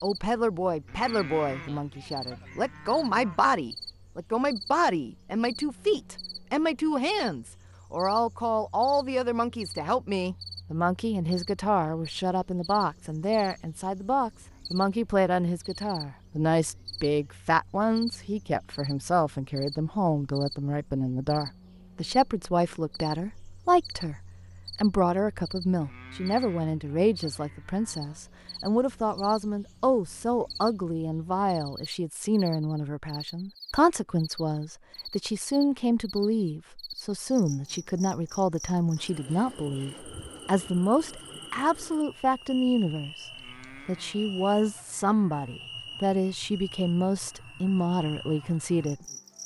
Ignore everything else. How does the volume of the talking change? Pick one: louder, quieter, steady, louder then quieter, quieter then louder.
steady.